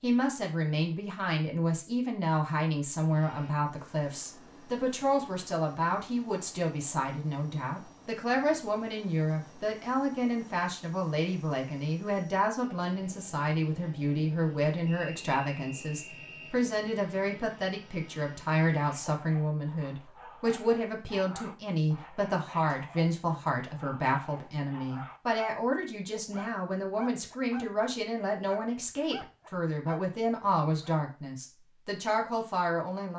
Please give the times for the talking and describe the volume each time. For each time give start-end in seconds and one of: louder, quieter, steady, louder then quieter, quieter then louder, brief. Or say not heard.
0.0-33.1 steady.